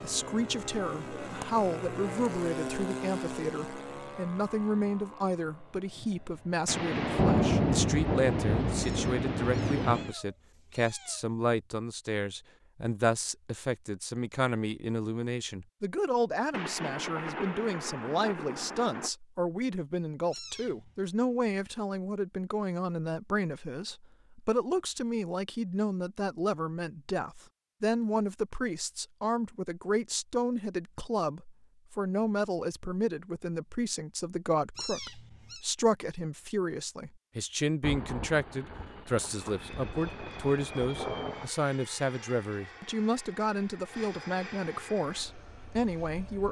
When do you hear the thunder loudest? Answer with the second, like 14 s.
7 s.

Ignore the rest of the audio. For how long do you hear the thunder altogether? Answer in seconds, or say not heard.
10 s.